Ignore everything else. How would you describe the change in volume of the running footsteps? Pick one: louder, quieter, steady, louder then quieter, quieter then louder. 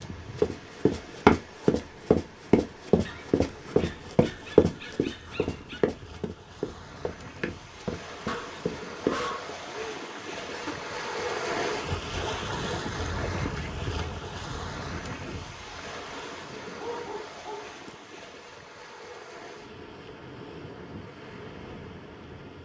quieter.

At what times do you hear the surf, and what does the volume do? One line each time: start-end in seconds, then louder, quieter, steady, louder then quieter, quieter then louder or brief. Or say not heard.
0.0-22.6 louder then quieter.